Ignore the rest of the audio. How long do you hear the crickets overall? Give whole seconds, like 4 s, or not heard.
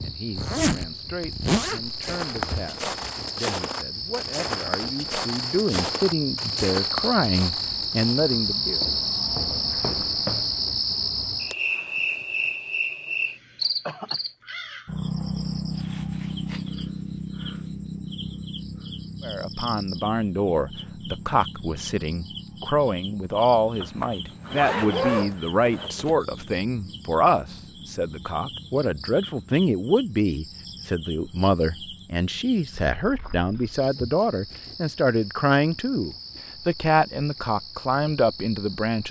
39 s.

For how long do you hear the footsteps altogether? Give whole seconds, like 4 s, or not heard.
9 s.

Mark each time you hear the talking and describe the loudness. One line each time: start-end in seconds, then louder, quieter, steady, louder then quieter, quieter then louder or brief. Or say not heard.
0.0-8.8 louder
19.2-39.0 steady.